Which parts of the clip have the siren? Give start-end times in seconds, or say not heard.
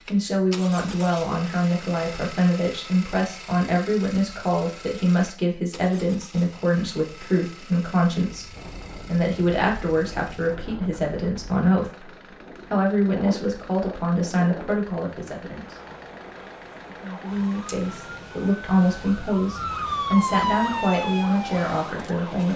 17.0-22.5.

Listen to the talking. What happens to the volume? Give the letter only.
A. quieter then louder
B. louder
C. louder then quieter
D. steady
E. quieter
D.